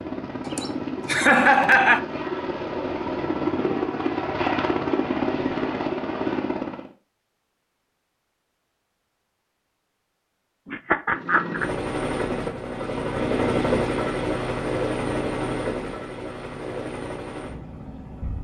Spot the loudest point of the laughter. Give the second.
1 s.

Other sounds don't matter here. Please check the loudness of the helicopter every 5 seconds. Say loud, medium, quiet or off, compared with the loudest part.
loud, loud, loud, medium.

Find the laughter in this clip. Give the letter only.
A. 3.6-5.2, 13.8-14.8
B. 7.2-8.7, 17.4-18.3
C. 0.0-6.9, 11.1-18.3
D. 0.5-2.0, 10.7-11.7
D.